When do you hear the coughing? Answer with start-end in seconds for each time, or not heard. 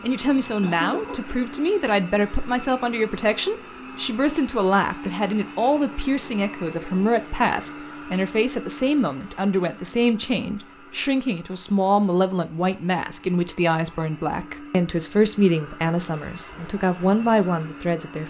0.3-1.4.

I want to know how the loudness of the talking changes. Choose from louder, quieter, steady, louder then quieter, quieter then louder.
steady.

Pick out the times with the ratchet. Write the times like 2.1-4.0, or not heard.
not heard.